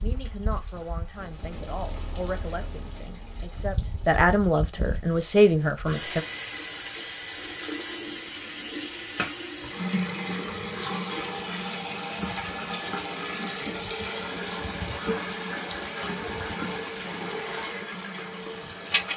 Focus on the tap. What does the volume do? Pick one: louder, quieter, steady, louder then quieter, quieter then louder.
louder.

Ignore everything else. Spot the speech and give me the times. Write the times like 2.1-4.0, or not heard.
0.0-6.2.